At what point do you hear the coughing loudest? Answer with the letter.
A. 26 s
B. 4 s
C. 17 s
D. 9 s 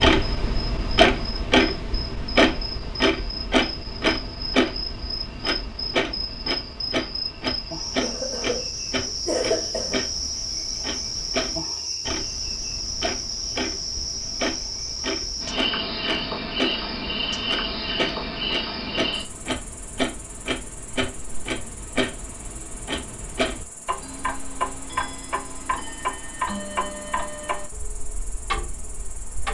D.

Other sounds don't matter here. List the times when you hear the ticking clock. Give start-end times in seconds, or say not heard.
0.0-29.4.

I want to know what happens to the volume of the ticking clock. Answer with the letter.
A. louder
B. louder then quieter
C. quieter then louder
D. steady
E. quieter
E.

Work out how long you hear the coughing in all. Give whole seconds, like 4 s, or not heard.
2 s.